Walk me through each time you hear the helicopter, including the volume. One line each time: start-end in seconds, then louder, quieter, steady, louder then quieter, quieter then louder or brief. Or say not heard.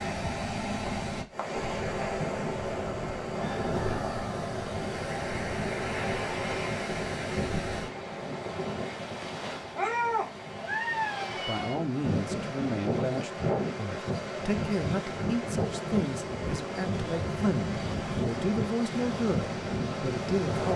not heard.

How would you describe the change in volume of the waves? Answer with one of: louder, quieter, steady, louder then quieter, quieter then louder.
steady.